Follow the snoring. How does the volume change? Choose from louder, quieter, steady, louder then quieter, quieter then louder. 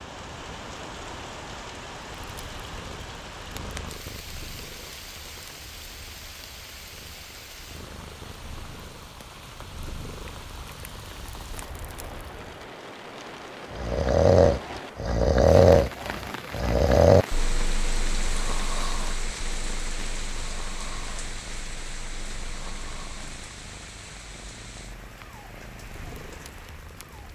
quieter.